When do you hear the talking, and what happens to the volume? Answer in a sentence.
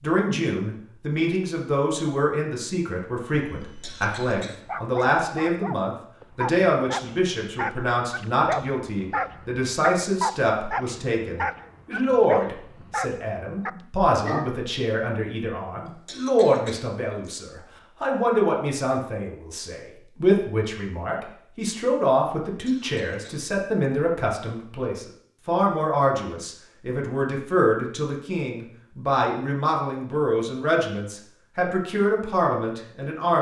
The talking can be heard from 0.0 to 33.3 s, at a steady volume.